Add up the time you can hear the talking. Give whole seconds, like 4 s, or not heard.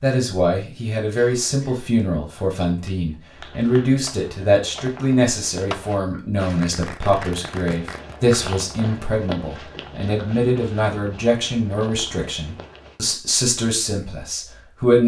15 s.